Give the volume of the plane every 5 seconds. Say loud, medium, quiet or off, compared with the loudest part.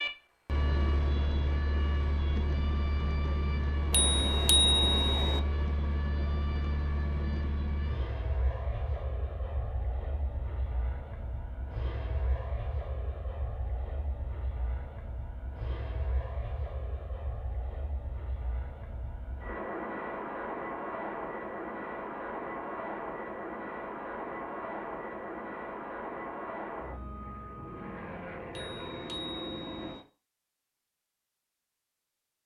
loud, loud, medium, medium, loud, loud, off.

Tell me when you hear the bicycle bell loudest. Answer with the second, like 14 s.
5 s.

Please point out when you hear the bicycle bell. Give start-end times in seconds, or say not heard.
3.9-5.4, 28.5-30.0.